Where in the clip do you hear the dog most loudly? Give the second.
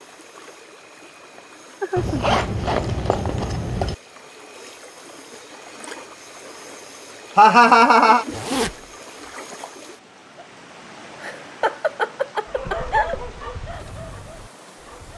13 s.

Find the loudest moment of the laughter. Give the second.
8 s.